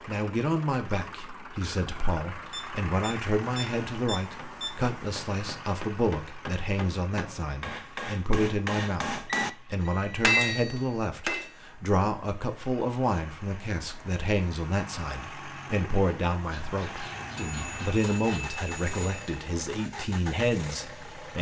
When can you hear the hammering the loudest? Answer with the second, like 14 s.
10 s.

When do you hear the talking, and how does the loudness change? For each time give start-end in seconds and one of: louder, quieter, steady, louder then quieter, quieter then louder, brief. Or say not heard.
0.1-21.3 steady.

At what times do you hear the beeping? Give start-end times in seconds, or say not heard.
2.5-4.7, 9.3-10.3, 17.4-19.4.